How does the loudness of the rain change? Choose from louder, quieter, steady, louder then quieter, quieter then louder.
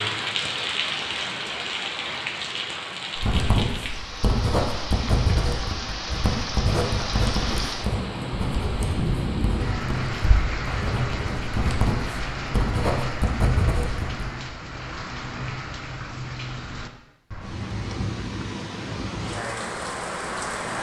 steady.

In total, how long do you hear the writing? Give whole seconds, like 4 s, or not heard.
11 s.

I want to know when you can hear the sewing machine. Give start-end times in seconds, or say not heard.
not heard.